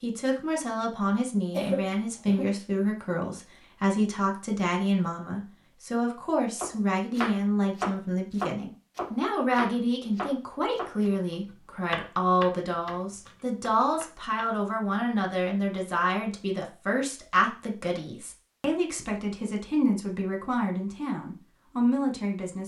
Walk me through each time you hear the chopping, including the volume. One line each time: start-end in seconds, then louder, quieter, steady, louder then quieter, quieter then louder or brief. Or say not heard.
6.5-14.4 quieter.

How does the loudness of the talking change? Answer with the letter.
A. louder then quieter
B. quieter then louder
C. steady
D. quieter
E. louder
C.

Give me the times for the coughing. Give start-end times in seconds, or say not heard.
1.5-2.5.